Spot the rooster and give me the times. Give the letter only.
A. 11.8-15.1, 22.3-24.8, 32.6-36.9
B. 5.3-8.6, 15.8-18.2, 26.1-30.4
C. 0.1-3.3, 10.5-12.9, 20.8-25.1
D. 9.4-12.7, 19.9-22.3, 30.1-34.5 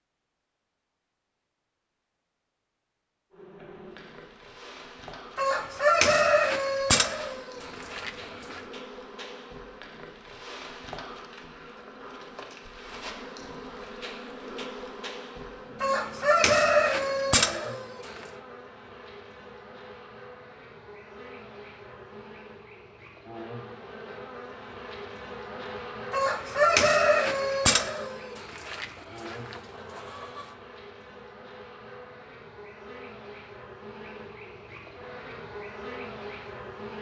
B.